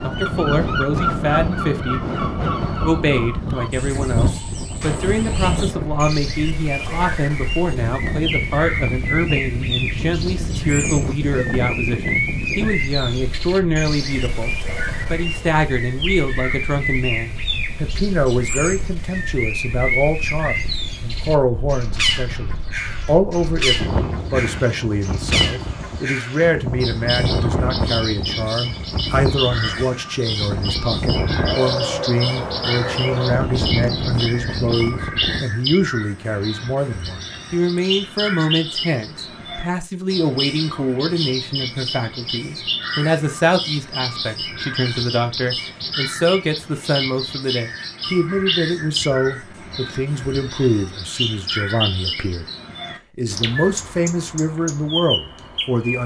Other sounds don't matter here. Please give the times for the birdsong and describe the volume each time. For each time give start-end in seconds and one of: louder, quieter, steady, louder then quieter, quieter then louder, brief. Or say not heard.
0.0-56.0 steady.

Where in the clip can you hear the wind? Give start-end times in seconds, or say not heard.
0.0-35.5.